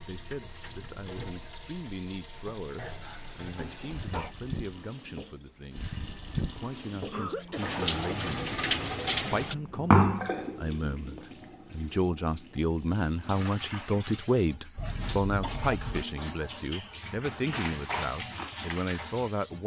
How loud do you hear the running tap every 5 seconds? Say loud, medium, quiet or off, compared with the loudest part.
quiet, loud, medium, medium.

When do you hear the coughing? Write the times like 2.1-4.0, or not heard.
2.8-4.3, 7.1-8.0, 14.8-16.1.